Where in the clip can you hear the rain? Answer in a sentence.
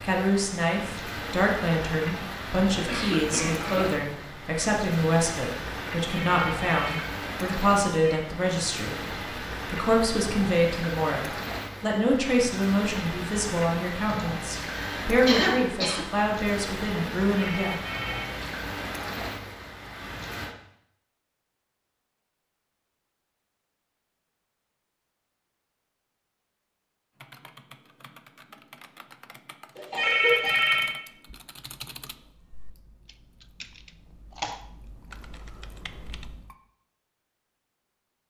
You can hear the rain from 0.0 to 20.6 s.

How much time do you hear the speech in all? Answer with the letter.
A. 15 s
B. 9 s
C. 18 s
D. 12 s
C.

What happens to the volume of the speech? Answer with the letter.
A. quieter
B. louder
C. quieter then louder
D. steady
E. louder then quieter
D.